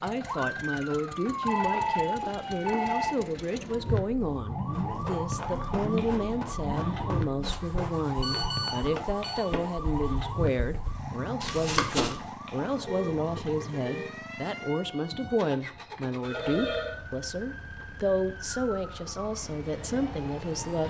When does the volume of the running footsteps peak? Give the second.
12 s.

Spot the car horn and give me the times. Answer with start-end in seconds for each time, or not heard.
12.8-14.2.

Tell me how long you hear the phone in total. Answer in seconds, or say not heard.
4 s.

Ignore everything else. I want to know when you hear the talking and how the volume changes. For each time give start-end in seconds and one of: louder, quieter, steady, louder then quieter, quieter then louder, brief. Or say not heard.
0.0-20.8 steady.